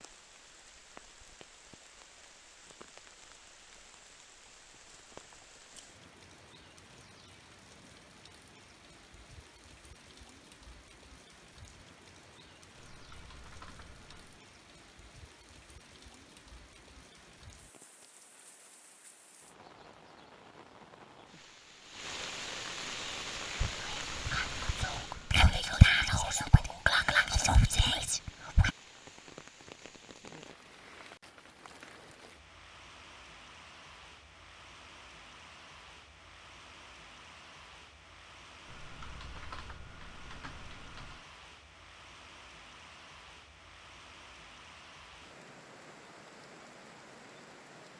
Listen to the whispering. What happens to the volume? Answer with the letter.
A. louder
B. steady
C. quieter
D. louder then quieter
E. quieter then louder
D.